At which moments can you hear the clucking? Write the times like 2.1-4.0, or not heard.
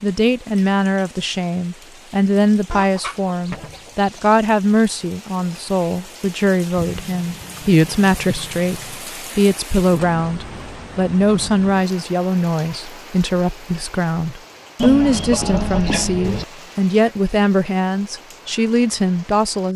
2.7-4.3, 6.8-9.1, 14.8-16.4.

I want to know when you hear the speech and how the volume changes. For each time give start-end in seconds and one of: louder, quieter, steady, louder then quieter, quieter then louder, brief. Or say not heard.
0.0-19.7 steady.